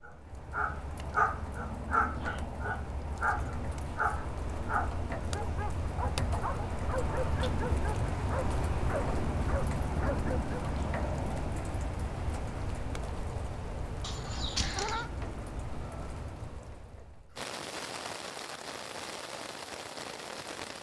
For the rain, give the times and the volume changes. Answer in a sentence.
You can hear the rain from 0.0 to 20.7 s, getting louder then quieter.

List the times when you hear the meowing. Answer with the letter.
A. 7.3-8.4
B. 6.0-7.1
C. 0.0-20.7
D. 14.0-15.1
D.